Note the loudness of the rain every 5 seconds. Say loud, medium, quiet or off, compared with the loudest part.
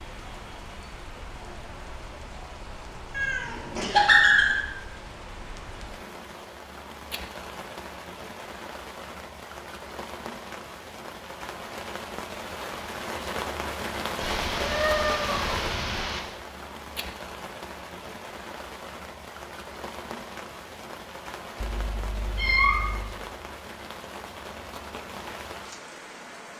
medium, medium, loud, loud, medium, medium.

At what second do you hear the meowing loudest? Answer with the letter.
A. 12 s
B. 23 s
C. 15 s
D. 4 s
D.